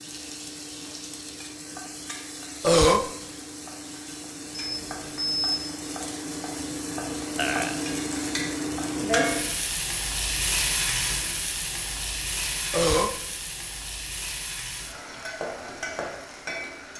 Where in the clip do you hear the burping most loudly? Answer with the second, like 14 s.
3 s.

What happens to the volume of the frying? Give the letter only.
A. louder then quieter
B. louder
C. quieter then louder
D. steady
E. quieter
A.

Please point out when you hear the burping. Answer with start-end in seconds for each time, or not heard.
2.6-3.0, 7.3-8.3, 12.7-13.2.